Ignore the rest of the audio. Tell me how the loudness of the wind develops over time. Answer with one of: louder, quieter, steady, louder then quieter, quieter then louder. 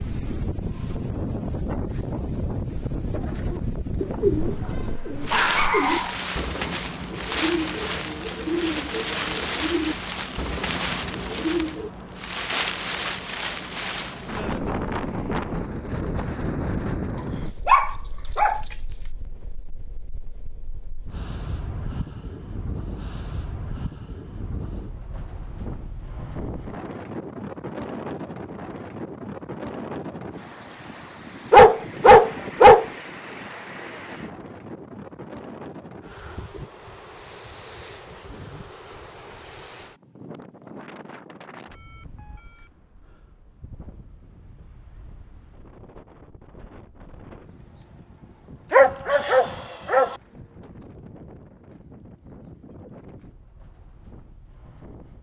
quieter.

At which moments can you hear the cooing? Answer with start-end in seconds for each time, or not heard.
3.1-11.9.